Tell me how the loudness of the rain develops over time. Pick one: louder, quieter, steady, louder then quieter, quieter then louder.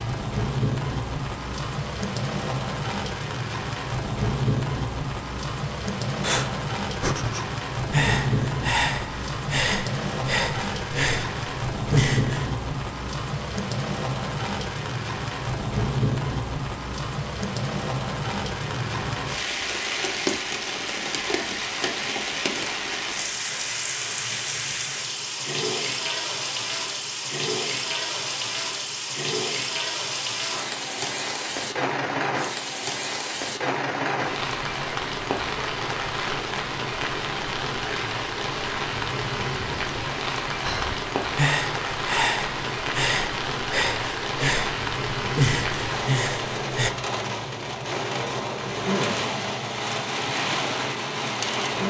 steady.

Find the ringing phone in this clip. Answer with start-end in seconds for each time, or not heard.
not heard.